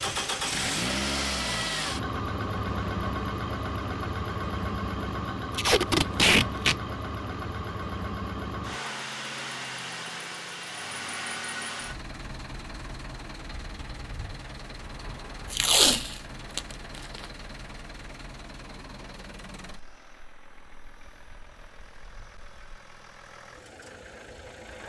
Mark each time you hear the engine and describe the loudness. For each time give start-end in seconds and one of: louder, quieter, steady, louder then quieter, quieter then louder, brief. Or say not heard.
0.0-24.8 quieter.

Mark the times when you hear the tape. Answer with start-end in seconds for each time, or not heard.
5.5-6.8, 15.5-16.6.